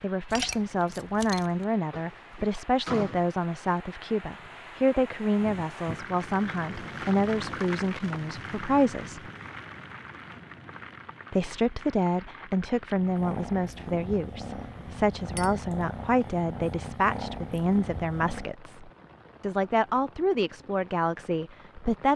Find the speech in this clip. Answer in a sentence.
You can hear the speech from 0.0 to 9.3 s and from 11.3 to 22.1 s.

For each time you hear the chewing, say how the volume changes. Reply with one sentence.
You can't hear the chewing here.